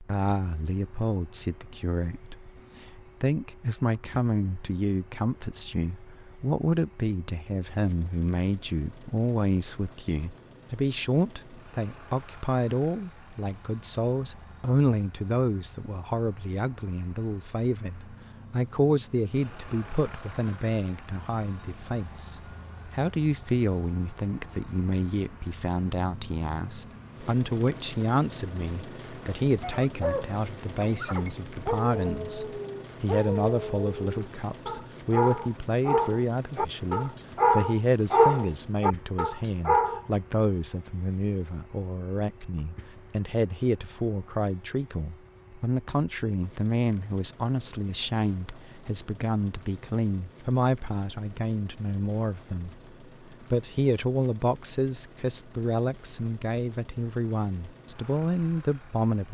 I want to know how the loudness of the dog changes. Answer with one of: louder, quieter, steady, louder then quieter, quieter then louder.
louder.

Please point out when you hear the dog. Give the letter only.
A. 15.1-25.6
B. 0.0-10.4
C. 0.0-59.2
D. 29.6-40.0
D.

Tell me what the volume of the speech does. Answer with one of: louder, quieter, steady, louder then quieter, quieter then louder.
steady.